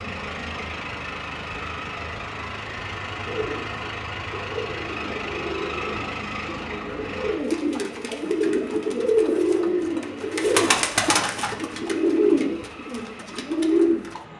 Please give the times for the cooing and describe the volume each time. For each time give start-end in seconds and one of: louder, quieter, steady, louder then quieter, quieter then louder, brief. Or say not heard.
3.2-14.2 louder.